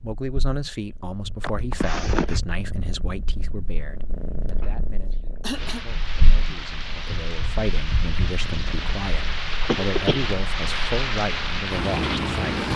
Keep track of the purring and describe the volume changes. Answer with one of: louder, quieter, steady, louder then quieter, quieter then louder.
louder.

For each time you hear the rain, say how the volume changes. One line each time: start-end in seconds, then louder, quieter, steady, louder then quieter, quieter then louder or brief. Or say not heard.
5.5-12.7 louder.